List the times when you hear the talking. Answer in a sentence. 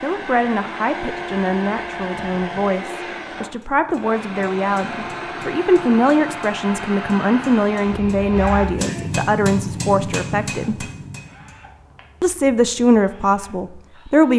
You can hear the talking from 0.0 to 10.8 s and from 12.2 to 14.3 s.